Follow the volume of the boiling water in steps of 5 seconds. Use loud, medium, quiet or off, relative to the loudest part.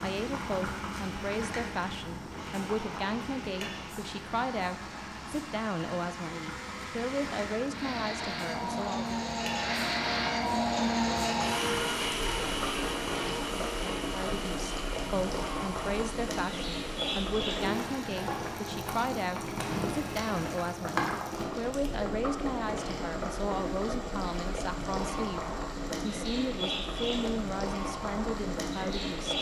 medium, medium, loud, loud, loud, loud.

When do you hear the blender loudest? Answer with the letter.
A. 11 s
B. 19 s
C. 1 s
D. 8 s
A.